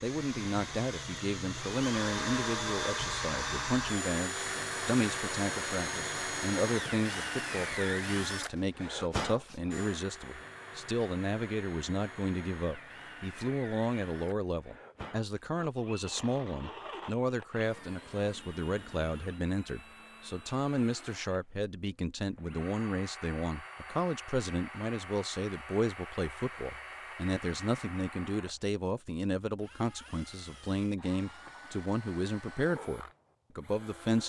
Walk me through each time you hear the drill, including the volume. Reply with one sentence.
The drill can be heard from 0.0 to 34.2 s, getting quieter.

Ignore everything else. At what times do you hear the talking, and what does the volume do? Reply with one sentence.
You can hear the talking from 0.0 to 34.2 s, at a steady volume.